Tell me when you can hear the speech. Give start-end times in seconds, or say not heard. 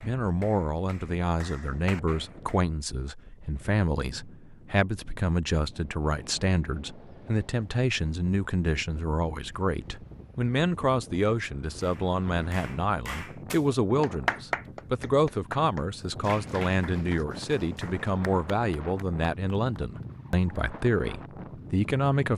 0.0-22.3.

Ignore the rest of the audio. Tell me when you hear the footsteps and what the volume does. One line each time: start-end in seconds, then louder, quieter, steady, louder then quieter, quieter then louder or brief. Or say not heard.
not heard.